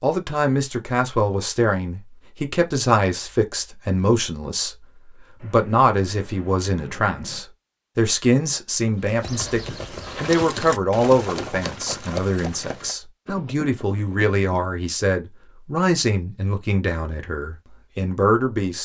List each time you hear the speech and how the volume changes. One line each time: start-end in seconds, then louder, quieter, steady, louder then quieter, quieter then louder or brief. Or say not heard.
0.0-4.8 steady
5.4-18.7 steady.